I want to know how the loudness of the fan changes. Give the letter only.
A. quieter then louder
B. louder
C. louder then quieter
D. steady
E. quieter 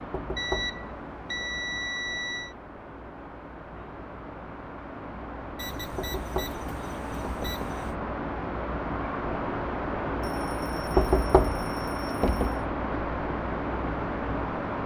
B.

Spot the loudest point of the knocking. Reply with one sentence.
The loudest moment of the knocking is at 11 seconds.